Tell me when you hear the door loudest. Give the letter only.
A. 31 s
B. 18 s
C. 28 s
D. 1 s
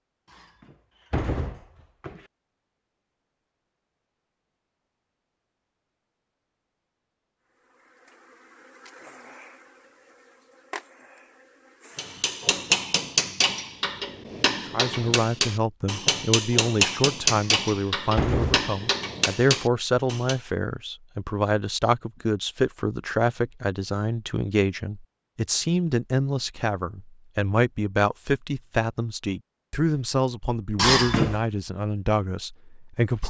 A.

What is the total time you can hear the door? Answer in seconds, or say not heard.
4 s.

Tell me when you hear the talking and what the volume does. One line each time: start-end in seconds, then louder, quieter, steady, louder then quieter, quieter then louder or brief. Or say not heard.
14.7-33.2 steady.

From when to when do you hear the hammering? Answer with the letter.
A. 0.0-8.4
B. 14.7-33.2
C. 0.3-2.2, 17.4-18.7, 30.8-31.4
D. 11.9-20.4
D.